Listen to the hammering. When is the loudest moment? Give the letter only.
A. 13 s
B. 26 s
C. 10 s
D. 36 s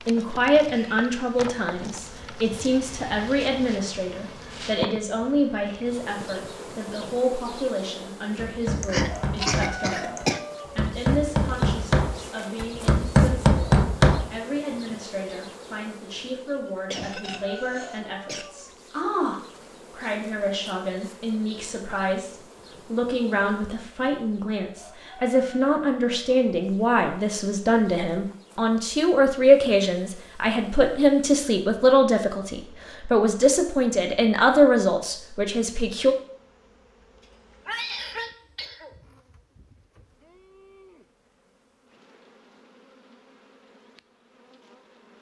A.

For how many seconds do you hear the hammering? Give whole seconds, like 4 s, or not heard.
6 s.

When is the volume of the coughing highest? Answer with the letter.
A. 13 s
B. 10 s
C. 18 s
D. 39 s
B.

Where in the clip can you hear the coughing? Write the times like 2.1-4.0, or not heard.
8.8-10.4, 16.6-18.5, 37.6-39.0.